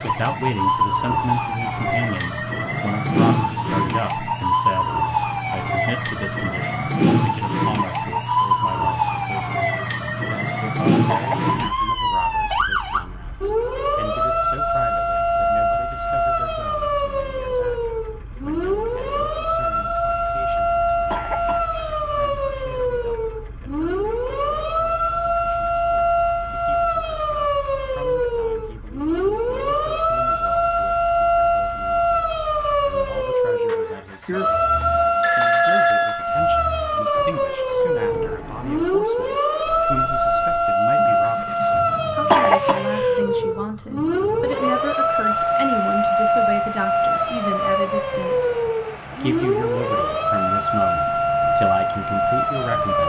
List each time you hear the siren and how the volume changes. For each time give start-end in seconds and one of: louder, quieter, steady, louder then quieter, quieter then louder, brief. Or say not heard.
0.0-53.0 steady.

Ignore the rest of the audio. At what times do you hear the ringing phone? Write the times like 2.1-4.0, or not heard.
34.8-36.2.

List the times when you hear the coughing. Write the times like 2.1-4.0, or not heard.
11.1-11.9, 21.1-21.9, 42.3-43.1.